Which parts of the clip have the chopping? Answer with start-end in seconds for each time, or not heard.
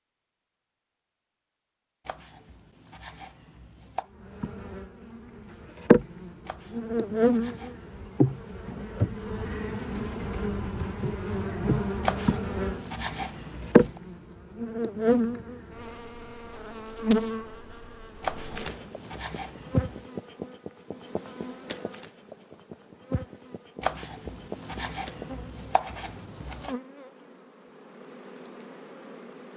2.0-4.1, 6.5-8.1, 12.0-14.0, 18.2-20.1, 23.8-26.8.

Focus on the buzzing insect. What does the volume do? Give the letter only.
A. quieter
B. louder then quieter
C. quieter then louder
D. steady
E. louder
A.